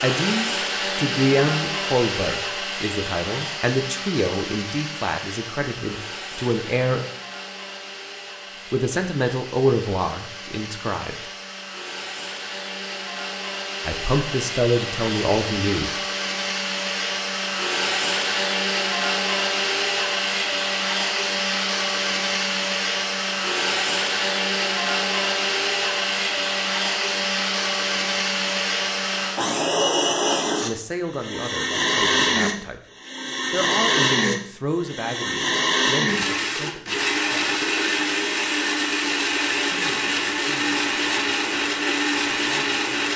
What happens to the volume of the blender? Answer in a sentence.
The loudness of the blender goes up.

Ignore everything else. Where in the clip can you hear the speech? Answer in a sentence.
You can hear the speech from 0.0 to 7.0 s, from 8.7 to 11.2 s, from 13.8 to 15.9 s, from 30.6 to 32.8 s, from 33.5 to 37.6 s and from 39.6 to 43.1 s.